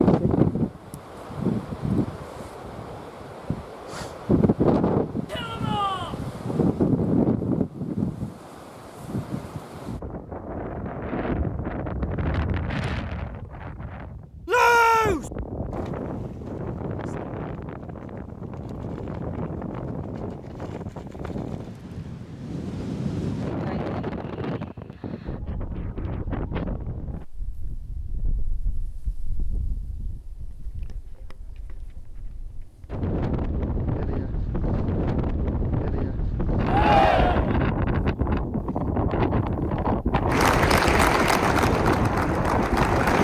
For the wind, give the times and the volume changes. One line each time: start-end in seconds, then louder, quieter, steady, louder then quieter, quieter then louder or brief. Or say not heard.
0.0-43.1 quieter then louder.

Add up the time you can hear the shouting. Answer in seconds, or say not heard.
3 s.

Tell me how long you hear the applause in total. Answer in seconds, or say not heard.
3 s.